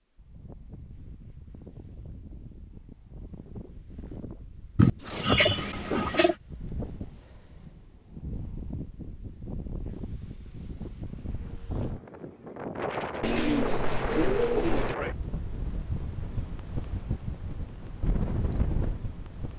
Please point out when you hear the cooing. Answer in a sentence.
You can hear the cooing from 4.8 to 6.3 s and from 13.2 to 14.9 s.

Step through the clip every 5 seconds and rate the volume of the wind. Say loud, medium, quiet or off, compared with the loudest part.
quiet, medium, loud, loud.